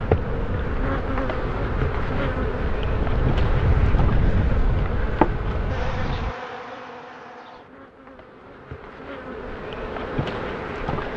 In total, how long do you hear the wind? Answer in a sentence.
The wind can be heard for 6 seconds in total.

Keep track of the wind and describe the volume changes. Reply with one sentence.
The volume of the wind goes up, then down.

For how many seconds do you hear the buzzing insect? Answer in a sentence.
You can hear the buzzing insect for 11 seconds altogether.